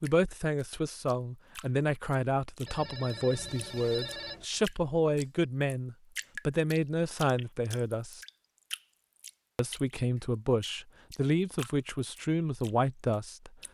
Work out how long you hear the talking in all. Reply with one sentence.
You can hear the talking for 12 seconds altogether.